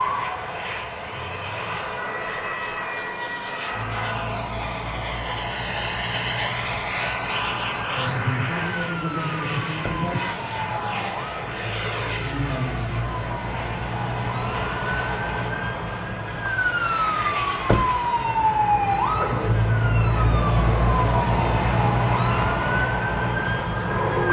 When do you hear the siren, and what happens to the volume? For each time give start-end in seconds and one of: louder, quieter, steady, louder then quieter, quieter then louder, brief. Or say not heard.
0.0-24.2 louder.